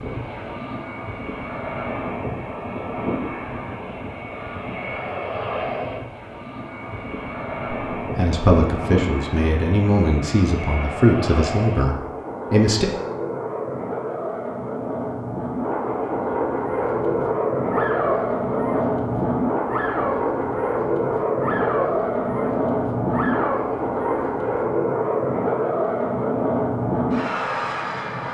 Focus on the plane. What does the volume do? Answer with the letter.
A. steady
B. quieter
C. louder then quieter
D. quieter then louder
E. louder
E.